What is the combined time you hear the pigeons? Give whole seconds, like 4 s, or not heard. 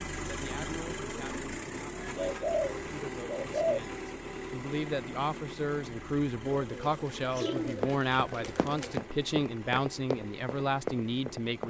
4 s.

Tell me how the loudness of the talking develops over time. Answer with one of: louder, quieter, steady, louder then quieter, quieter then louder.
louder.